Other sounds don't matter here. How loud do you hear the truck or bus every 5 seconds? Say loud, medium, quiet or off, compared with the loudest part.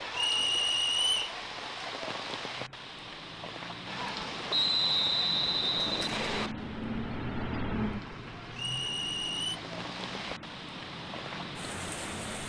medium, loud, medium.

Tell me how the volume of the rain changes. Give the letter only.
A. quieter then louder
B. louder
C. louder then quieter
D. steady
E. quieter
A.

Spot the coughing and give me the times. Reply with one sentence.
You can't hear the coughing here.